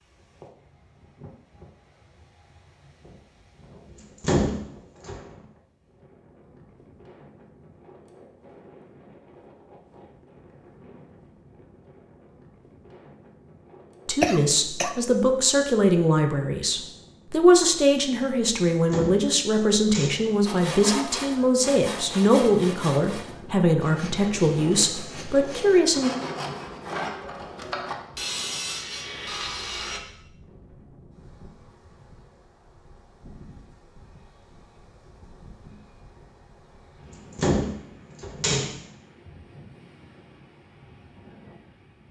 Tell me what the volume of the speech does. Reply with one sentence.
The loudness of the speech stays about the same.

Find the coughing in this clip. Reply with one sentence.
The coughing can be heard from 14.2 to 14.9 s.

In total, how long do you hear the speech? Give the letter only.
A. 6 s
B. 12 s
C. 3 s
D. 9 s
B.